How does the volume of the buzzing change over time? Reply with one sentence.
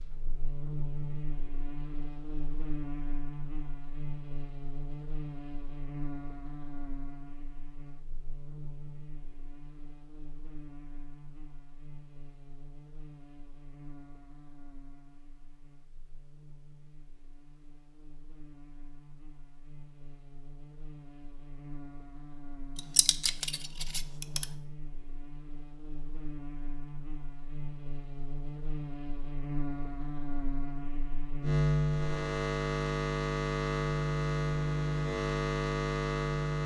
The volume of the buzzing goes down, then up.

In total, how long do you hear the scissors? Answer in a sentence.
You can hear the scissors for 2 seconds altogether.